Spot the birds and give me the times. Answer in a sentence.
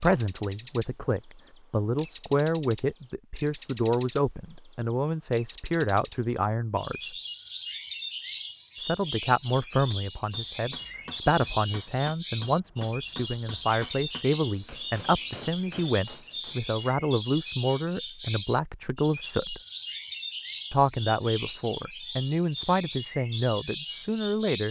The birds can be heard from 0.0 to 24.6 s.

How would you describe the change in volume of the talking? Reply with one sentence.
The volume of the talking stays about the same.